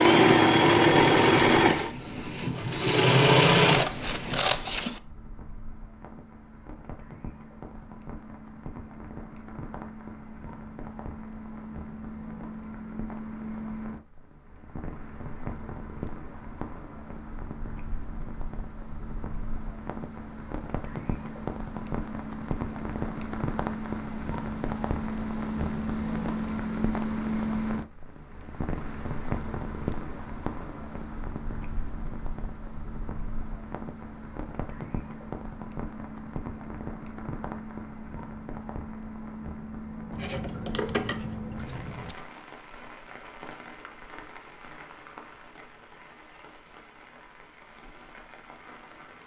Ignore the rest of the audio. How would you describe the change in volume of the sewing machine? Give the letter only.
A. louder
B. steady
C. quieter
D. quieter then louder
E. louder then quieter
D.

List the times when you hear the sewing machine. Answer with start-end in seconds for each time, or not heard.
0.0-4.6.